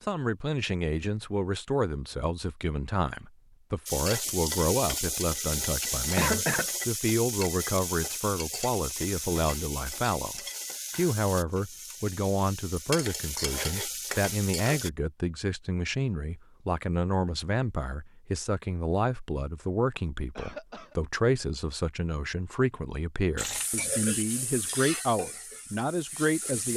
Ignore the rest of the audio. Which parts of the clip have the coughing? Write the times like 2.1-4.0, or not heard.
6.2-6.7, 20.4-20.9.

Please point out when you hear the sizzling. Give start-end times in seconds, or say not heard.
3.9-14.9, 23.4-26.7.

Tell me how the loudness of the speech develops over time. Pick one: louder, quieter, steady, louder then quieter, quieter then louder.
steady.